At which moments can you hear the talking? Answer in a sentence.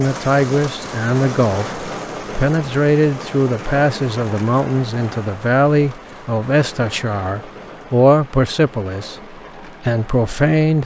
You can hear the talking from 0.0 to 10.8 s.